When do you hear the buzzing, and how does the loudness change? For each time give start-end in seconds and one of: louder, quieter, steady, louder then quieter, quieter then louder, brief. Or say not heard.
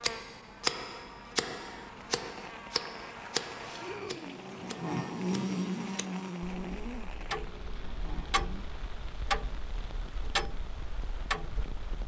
0.0-8.7 louder then quieter.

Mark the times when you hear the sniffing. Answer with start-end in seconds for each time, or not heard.
3.6-4.3.